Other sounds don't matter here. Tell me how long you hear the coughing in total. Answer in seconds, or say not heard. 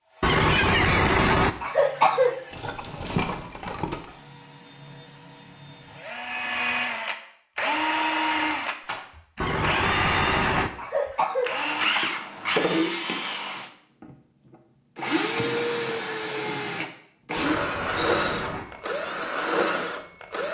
7 s.